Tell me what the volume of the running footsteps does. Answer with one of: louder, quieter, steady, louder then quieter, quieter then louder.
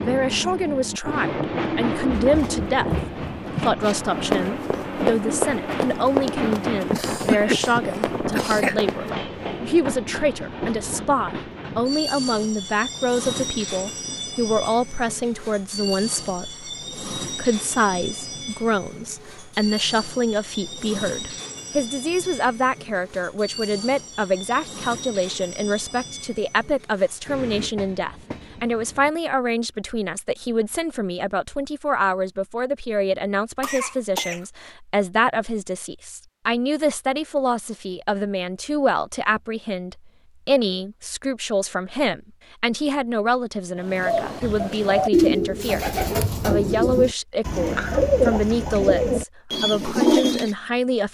louder then quieter.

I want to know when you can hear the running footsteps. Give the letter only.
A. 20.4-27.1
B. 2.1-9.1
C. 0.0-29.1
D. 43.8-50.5
B.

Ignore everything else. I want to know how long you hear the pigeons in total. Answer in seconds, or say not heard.
7 s.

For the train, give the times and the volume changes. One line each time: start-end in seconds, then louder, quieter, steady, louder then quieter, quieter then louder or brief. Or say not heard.
0.0-29.1 quieter.